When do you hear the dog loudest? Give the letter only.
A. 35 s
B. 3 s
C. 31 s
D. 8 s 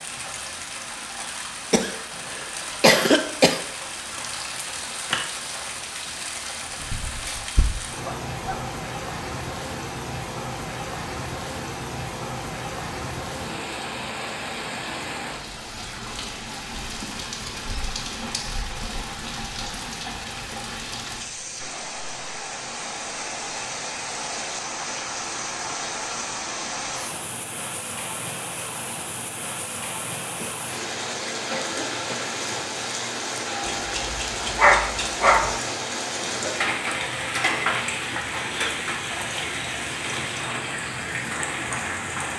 A.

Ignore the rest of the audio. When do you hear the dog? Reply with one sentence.
You can hear the dog from 6.9 to 8.6 s and from 33.6 to 35.5 s.